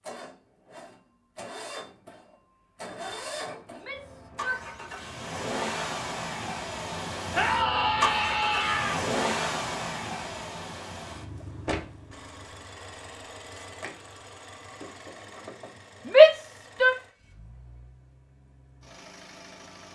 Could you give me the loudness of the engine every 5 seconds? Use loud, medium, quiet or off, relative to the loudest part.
medium, loud, medium, quiet.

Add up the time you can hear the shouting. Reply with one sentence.
The shouting can be heard for 4 seconds in total.